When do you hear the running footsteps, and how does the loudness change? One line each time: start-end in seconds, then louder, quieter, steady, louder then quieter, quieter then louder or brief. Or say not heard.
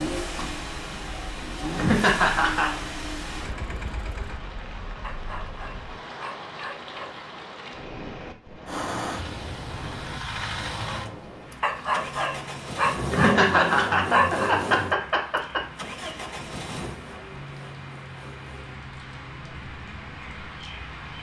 not heard.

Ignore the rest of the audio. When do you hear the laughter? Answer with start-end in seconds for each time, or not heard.
1.8-2.7, 13.1-15.6.